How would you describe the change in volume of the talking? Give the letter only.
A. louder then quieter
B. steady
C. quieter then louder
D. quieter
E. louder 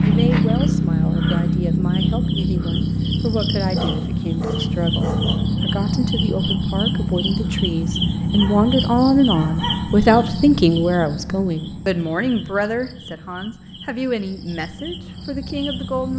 A.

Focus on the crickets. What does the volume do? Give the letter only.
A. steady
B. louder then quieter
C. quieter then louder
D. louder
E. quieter
E.